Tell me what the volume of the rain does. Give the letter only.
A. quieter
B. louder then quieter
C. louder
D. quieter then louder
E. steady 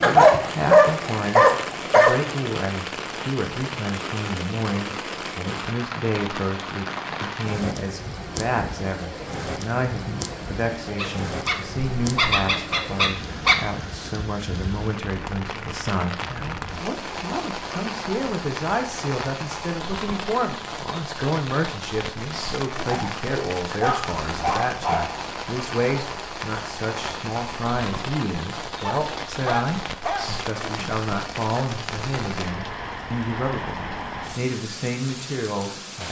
E.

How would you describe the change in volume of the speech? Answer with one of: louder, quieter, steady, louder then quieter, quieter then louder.
steady.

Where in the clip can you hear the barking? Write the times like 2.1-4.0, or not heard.
0.0-2.2, 10.9-13.6, 22.9-25.1, 28.8-30.4.